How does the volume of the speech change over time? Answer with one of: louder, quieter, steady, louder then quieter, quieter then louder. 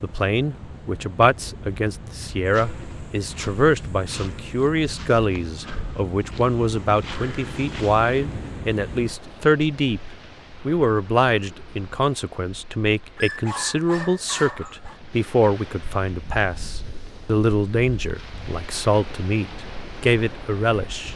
steady.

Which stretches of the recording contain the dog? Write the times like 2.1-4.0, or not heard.
13.2-14.9.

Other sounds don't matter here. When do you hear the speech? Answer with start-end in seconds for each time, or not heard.
0.0-21.1.